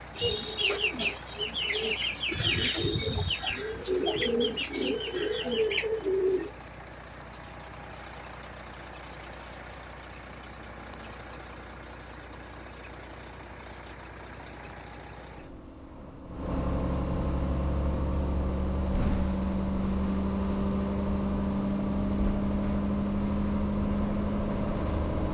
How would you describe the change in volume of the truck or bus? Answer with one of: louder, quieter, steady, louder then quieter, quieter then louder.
louder.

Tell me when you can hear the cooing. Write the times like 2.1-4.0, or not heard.
0.1-6.5.